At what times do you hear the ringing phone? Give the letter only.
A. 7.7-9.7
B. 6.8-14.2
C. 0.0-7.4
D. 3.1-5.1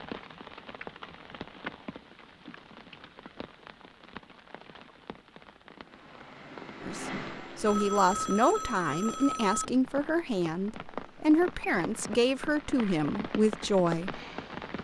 A.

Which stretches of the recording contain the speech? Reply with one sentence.
You can hear the speech from 6.8 to 14.2 s.